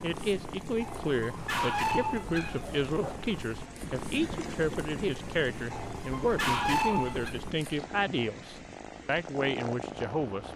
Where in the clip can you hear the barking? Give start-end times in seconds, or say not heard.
0.8-3.4, 5.7-7.3.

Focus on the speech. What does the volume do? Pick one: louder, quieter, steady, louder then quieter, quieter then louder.
steady.